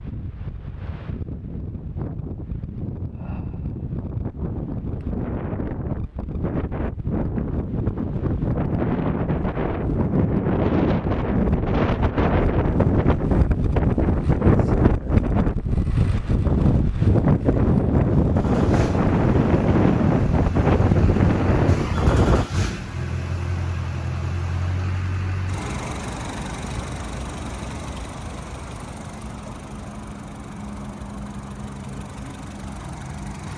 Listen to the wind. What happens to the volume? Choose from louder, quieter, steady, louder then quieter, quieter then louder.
louder.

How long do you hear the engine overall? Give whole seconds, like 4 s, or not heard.
15 s.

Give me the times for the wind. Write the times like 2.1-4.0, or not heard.
0.0-22.5.